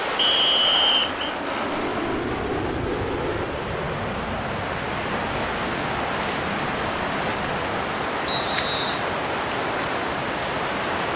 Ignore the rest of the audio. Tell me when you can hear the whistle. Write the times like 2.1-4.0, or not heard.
0.1-1.1, 8.2-9.1.